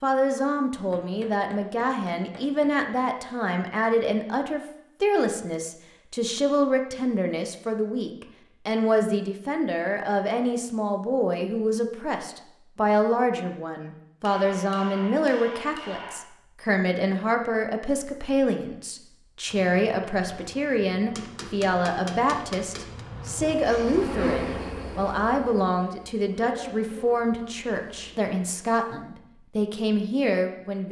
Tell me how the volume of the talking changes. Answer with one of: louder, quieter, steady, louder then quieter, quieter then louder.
steady.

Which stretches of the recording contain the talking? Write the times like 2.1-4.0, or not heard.
0.0-30.8.